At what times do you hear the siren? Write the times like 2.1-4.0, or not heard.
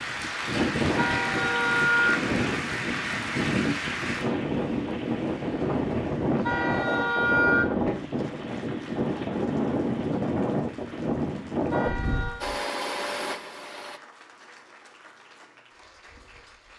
not heard.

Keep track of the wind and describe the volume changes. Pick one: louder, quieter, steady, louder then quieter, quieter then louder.
steady.